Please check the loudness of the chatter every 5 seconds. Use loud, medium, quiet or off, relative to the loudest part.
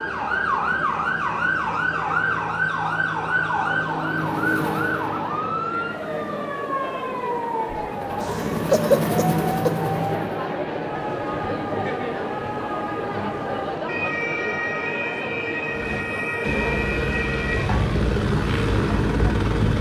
medium, loud, loud, medium.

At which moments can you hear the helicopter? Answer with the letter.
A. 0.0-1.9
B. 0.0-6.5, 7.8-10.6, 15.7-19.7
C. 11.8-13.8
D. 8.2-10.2
B.